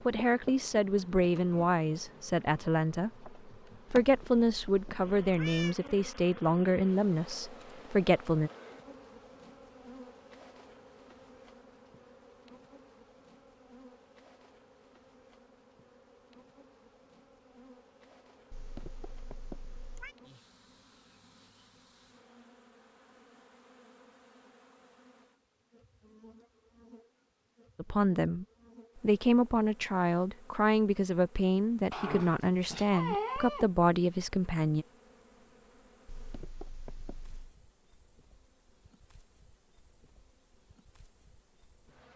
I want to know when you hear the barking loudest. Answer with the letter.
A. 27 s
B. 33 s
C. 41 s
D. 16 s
B.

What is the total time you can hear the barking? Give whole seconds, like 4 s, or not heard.
2 s.